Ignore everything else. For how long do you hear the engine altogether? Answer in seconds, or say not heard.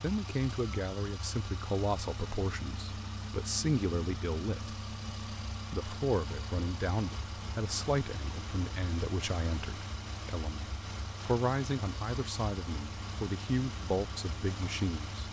15 s.